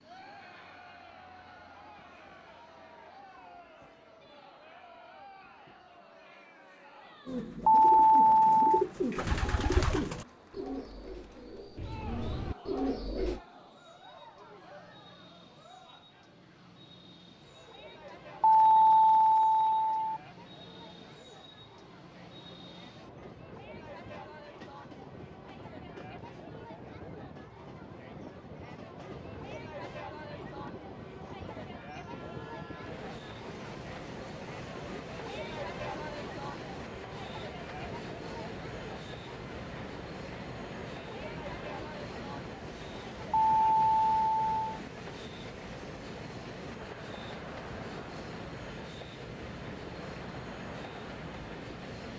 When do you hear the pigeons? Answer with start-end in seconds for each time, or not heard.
7.2-13.4.